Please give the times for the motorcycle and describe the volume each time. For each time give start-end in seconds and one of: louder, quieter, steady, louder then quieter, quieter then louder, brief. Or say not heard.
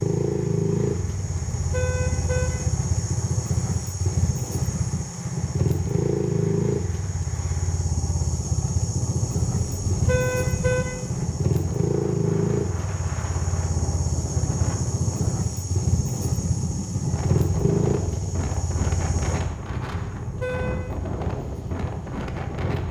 0.0-22.8 quieter.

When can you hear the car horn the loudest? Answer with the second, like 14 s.
10 s.